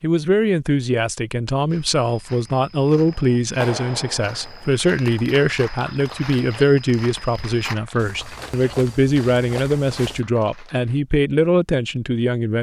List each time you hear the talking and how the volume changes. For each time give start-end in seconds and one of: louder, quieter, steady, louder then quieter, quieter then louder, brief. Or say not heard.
0.0-12.5 steady.